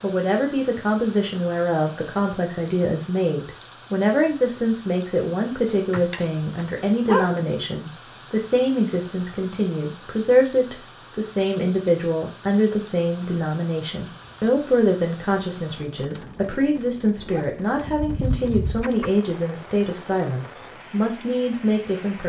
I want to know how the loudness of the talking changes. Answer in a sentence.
The volume of the talking stays about the same.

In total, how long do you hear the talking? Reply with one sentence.
You can hear the talking for 22 seconds altogether.